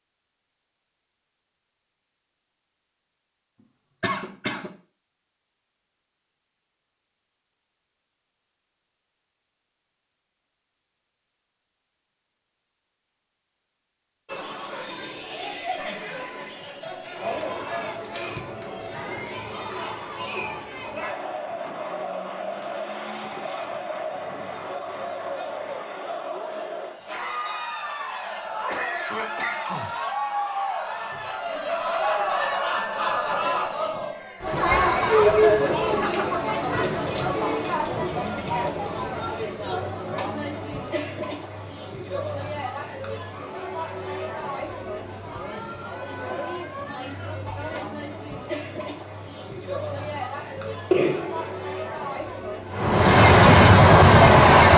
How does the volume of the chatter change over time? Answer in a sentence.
The volume of the chatter goes up, then down.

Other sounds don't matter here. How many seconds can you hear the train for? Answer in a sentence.
You can hear the train for 2 seconds altogether.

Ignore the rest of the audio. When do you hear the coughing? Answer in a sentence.
You can hear the coughing from 4.0 to 4.7 s, from 28.4 to 29.9 s and from 50.9 to 51.5 s.